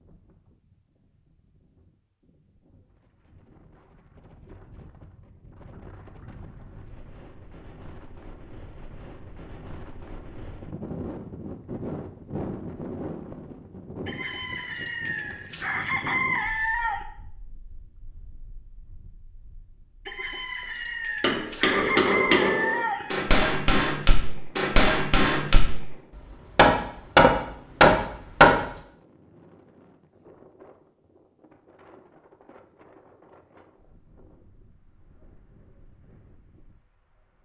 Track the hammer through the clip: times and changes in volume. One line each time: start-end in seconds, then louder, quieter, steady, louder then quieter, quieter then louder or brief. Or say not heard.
21.2-28.6 louder.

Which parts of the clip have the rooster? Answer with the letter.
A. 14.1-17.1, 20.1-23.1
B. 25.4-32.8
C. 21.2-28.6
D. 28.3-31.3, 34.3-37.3
A.